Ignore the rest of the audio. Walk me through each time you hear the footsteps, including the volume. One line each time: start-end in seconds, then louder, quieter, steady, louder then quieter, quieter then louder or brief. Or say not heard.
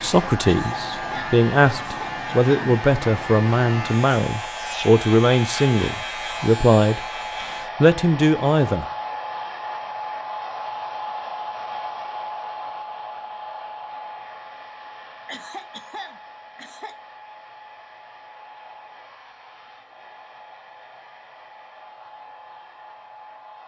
not heard.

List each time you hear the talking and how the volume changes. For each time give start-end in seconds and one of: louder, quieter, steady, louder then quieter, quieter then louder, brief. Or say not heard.
0.0-7.0 steady
7.8-8.8 brief.